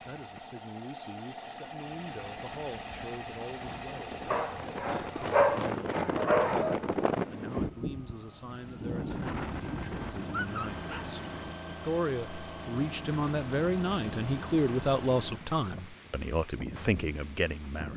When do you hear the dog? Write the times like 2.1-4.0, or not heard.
4.3-6.8, 9.1-11.1.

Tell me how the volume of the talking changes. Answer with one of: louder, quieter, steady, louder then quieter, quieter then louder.
louder.